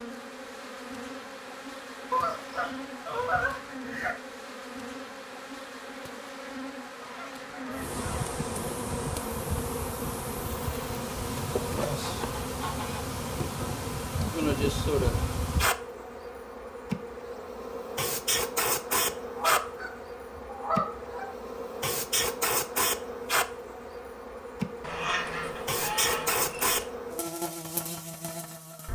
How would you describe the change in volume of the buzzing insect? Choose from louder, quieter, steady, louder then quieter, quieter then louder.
louder.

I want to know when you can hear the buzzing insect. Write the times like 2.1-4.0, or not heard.
0.0-28.9.